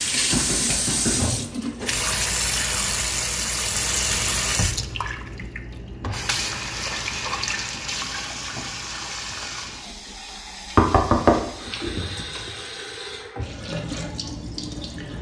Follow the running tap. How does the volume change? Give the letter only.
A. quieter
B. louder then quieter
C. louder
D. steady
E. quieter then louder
A.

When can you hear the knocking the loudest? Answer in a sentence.
The loudest moment of the knocking is at 11 seconds.